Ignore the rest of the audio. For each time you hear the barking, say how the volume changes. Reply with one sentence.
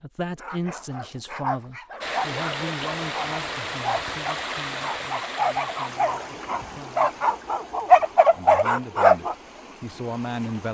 You can hear the barking from 0.4 to 9.3 s, getting louder.